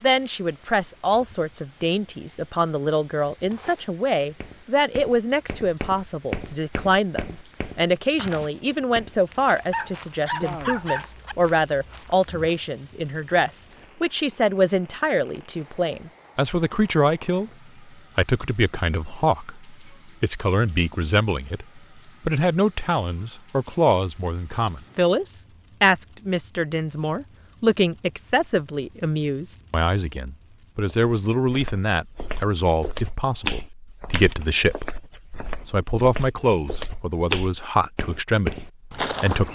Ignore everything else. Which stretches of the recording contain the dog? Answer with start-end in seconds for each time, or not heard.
9.7-11.3.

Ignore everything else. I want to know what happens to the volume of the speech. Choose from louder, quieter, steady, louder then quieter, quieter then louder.
steady.